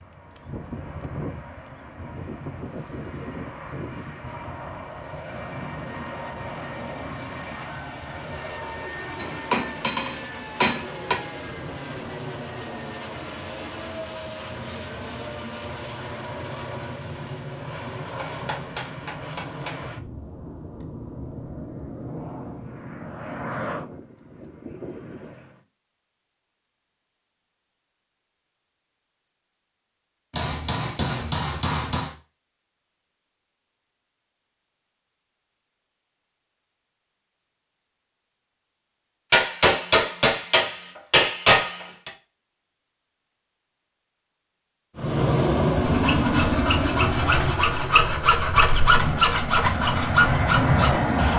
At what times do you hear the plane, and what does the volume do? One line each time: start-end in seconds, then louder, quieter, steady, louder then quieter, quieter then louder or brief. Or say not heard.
0.0-25.6 steady
45.0-51.3 quieter then louder.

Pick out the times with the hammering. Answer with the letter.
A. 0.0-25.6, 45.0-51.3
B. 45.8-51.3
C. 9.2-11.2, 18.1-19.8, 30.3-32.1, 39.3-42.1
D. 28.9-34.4
C.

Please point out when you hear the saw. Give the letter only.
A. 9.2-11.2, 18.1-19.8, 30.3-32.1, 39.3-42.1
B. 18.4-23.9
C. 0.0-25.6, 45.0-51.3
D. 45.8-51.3
D.